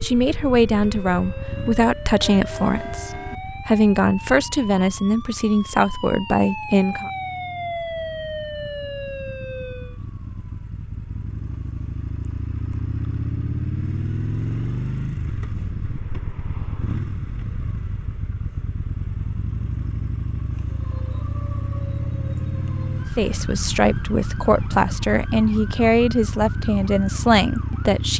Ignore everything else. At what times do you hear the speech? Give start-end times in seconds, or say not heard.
0.0-7.1, 23.1-28.1.